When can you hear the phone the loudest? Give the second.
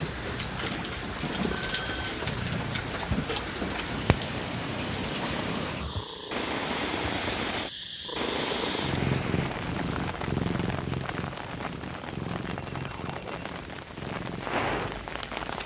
2 s.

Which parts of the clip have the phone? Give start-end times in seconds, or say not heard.
1.5-2.1, 11.8-13.4.